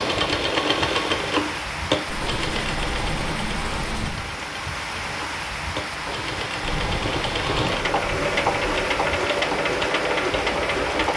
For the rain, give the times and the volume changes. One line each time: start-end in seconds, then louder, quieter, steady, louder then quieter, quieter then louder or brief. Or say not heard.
0.0-11.1 steady.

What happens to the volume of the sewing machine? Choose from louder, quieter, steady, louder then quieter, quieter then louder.
quieter then louder.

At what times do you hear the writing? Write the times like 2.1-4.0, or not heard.
2.0-4.1, 6.6-8.9.